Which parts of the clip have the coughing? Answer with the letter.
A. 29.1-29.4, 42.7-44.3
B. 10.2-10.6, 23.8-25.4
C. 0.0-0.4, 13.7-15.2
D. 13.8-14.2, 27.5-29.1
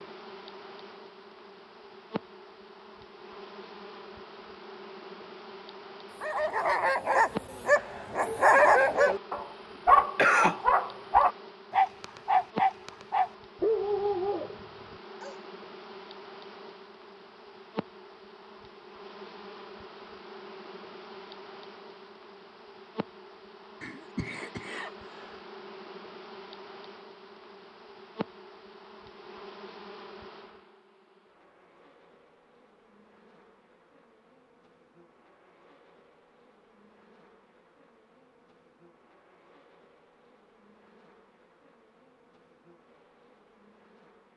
B.